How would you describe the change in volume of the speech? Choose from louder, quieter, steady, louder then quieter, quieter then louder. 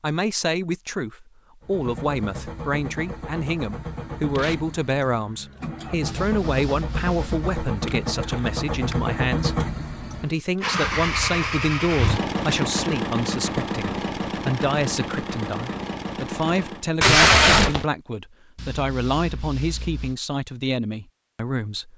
steady.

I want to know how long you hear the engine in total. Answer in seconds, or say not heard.
15 s.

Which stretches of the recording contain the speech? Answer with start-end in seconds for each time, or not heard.
0.0-9.6, 10.2-21.9.